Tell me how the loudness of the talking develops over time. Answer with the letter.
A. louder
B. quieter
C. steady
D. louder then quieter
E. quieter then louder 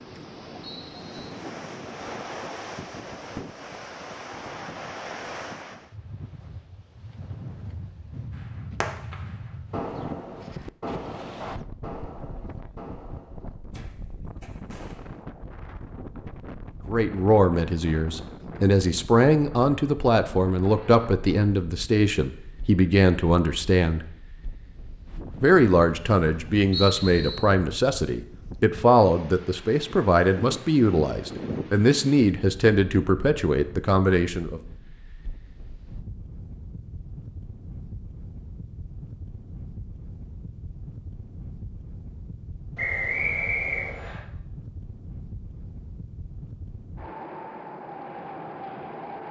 C.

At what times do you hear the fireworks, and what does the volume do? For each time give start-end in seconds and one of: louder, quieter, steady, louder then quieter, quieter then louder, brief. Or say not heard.
8.3-15.2 quieter.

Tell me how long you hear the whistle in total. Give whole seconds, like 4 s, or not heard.
3 s.